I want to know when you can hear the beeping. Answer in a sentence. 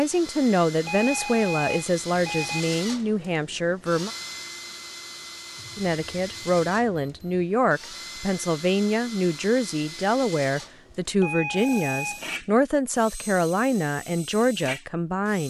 You can hear the beeping from 0.8 to 2.6 s, from 5.5 to 7.5 s and from 11.2 to 12.3 s.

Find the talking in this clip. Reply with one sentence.
You can hear the talking from 0.0 to 4.1 s and from 5.8 to 15.4 s.